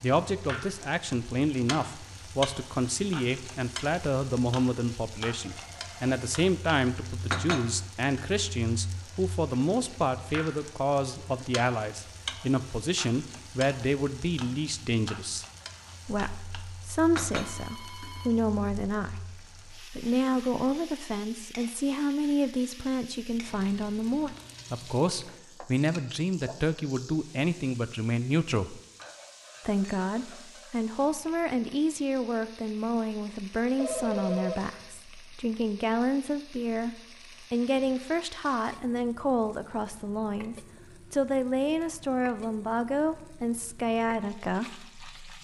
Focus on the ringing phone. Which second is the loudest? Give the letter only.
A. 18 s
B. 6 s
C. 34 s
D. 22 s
C.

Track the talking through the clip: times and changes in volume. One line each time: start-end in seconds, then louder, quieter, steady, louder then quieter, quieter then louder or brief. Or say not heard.
0.0-15.4 steady
16.1-28.8 steady
29.6-45.3 steady.